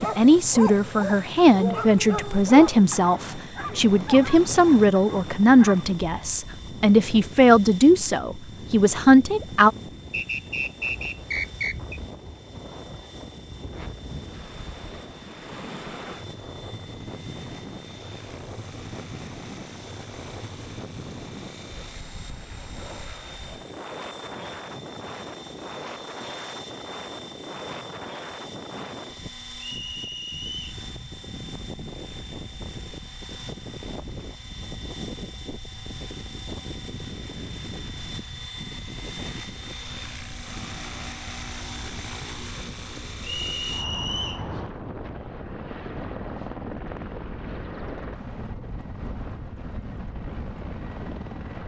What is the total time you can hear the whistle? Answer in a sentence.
The whistle can be heard for 4 seconds in total.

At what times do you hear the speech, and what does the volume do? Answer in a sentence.
The speech can be heard from 0.0 to 9.7 s, at a steady volume.